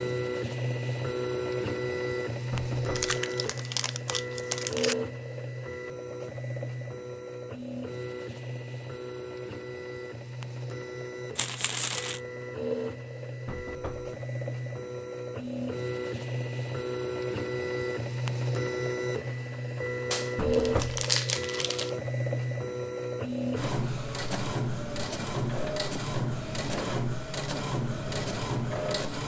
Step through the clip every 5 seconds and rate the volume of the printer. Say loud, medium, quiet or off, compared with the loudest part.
loud, medium, medium, loud, loud, loud.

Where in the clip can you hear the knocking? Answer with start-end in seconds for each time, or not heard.
2.5-3.0, 13.4-14.2, 20.4-21.1.